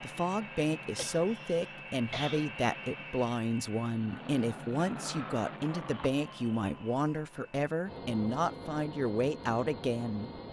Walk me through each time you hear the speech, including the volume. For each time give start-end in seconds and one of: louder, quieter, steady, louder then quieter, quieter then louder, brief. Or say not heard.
0.0-10.3 steady.